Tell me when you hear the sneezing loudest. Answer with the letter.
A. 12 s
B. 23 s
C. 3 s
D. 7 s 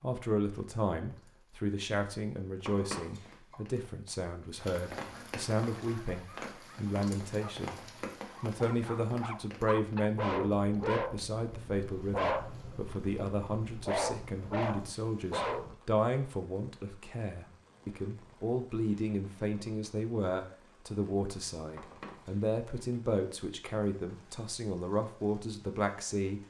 C.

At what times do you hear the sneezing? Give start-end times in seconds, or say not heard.
2.6-3.5, 21.8-22.4.